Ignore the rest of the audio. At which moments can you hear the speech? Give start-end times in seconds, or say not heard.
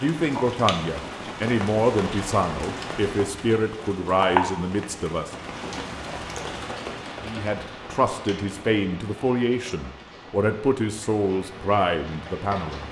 0.0-5.3, 7.2-12.8.